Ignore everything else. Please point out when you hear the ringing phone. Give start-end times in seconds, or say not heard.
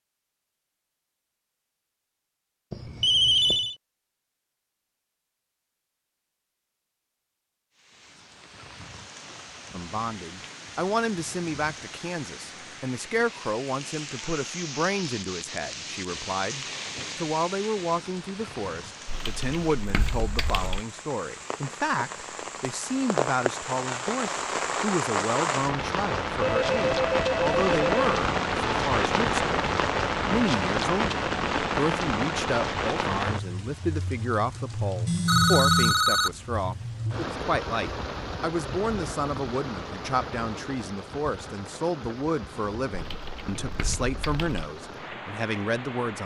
2.7-3.8, 26.4-28.1, 35.0-36.3.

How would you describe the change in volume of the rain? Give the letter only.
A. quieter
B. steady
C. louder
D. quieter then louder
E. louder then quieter
E.